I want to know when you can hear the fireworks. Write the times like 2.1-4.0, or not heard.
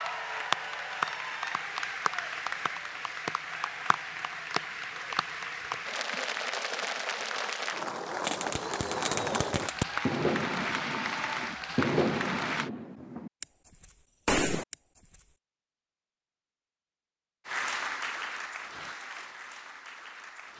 8.2-14.8.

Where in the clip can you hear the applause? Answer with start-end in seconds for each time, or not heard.
0.0-12.7, 17.4-20.5.